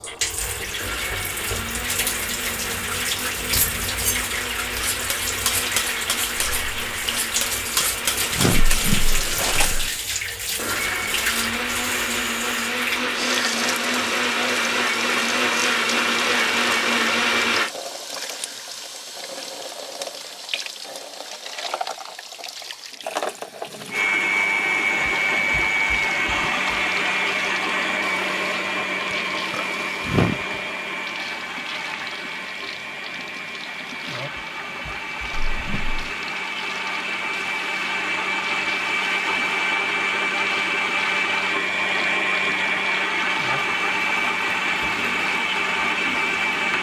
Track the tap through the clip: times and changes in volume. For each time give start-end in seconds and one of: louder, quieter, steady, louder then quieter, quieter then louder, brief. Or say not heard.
0.0-46.7 quieter.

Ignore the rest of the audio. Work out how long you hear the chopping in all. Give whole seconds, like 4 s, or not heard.
not heard.